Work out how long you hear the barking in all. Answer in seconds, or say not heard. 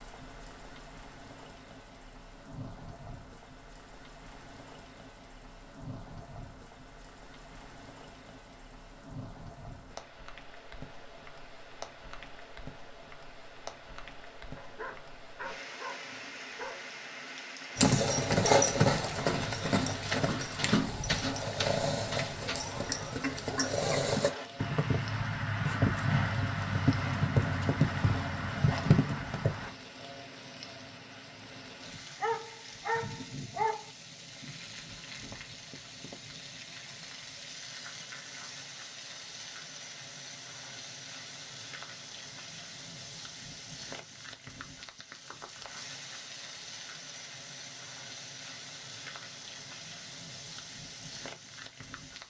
4 s.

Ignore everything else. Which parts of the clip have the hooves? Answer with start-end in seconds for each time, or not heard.
17.8-29.7.